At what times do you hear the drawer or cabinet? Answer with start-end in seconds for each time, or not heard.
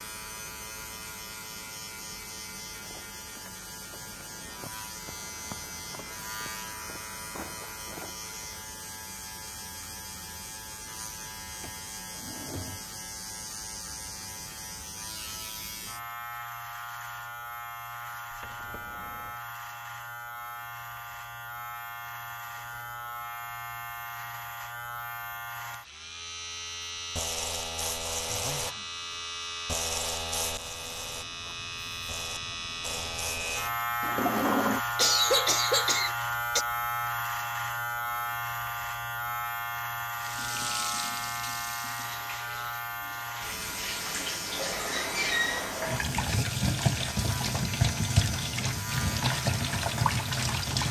11.6-12.9, 18.3-19.4, 34.0-34.8.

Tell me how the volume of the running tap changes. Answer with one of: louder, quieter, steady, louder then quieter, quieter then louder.
louder.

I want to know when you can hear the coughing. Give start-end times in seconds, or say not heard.
35.0-36.6.